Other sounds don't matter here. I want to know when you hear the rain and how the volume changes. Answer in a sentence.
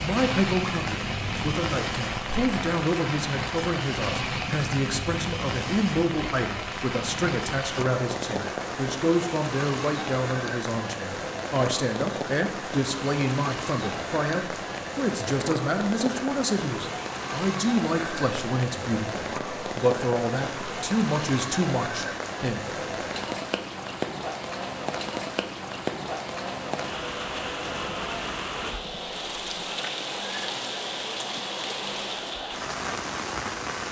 The rain can be heard from 0.0 to 33.8 s, at a steady volume.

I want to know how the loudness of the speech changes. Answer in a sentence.
The volume of the speech stays about the same.